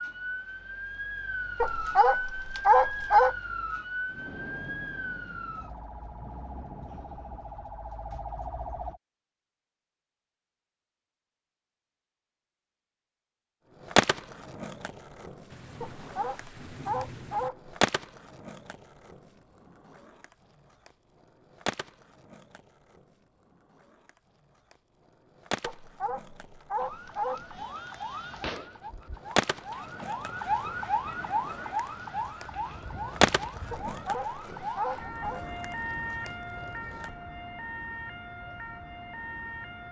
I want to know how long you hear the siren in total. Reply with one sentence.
The siren can be heard for 22 seconds in total.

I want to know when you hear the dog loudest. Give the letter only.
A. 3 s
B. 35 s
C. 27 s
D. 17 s
A.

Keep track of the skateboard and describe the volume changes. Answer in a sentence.
The loudness of the skateboard goes down, then up.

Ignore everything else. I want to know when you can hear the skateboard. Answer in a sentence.
You can hear the skateboard from 13.8 to 37.1 s.